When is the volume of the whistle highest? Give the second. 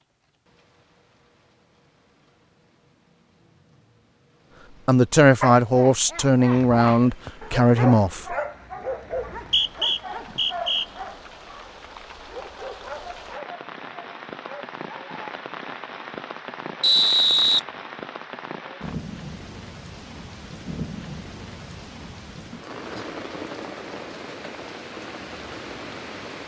17 s.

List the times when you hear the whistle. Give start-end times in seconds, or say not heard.
9.1-10.8, 16.8-17.6.